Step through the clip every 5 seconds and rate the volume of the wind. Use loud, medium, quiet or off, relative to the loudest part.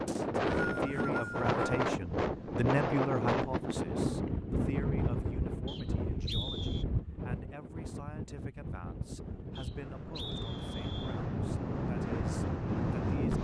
loud, medium, loud.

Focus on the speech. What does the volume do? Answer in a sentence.
The loudness of the speech goes down.